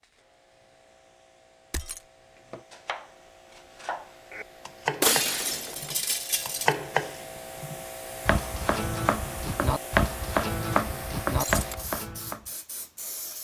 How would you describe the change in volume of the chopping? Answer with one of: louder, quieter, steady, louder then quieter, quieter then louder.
louder.